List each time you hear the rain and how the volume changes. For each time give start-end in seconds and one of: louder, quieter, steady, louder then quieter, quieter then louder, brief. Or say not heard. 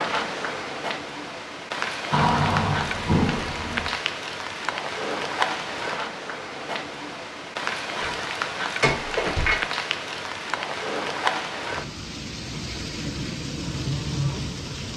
0.0-14.9 steady.